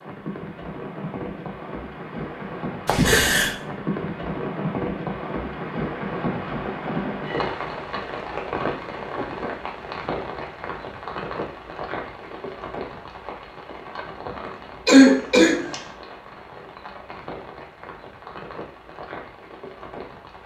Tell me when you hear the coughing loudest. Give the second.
15 s.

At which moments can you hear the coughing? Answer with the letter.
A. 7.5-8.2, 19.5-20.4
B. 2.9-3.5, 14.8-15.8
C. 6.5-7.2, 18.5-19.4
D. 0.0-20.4
B.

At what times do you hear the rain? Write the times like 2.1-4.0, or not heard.
0.0-20.4.